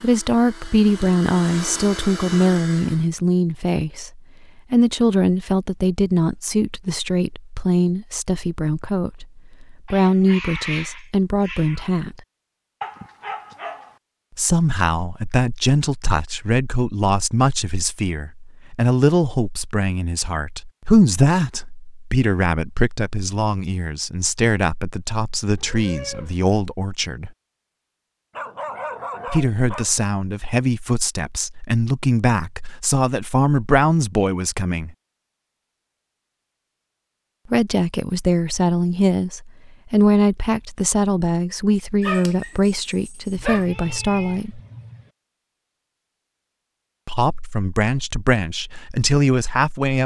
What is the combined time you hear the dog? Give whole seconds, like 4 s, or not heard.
4 s.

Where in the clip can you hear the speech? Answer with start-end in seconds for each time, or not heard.
0.0-12.2, 14.3-27.3, 29.2-35.0, 37.5-44.6, 47.0-50.0.